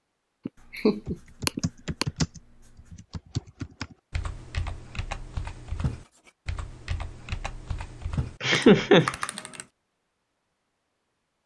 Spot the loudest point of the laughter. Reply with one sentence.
The volume of the laughter peaks at 9 seconds.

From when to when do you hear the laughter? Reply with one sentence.
You can hear the laughter from 0.5 to 2.0 s and from 8.4 to 9.1 s.